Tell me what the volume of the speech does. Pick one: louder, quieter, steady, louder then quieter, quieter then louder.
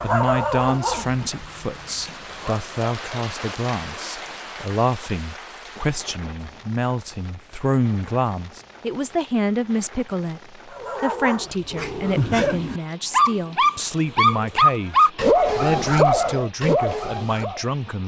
steady.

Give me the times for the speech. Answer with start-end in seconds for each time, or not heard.
0.0-18.0.